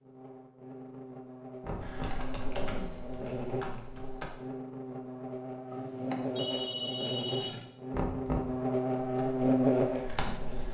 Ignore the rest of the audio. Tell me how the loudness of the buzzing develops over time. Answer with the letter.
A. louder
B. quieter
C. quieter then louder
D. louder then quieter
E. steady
A.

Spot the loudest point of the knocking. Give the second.
8 s.